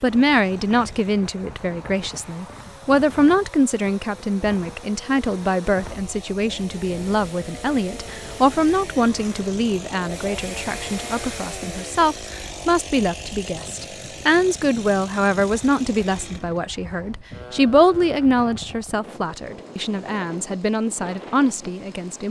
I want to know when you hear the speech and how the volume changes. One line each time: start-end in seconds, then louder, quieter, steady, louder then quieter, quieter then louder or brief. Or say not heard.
0.0-22.2 steady.